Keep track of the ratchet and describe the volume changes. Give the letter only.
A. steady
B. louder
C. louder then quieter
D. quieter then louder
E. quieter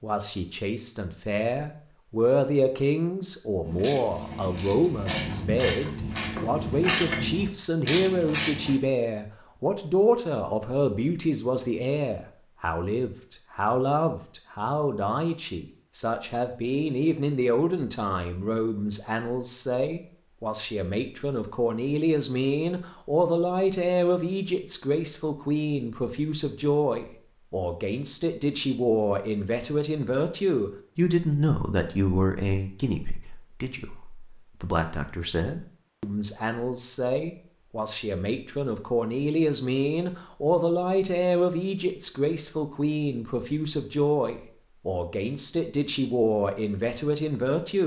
B.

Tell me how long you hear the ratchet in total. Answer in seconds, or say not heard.
5 s.